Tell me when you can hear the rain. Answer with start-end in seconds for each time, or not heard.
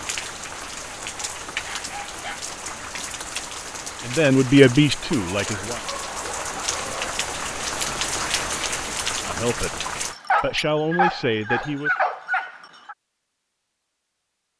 0.0-10.2.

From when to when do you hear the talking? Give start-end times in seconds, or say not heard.
4.0-5.8, 9.2-11.9.